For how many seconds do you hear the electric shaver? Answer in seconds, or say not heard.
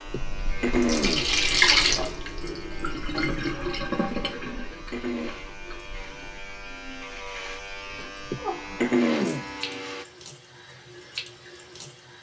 10 s.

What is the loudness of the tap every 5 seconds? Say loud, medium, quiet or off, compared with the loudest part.
loud, quiet, quiet.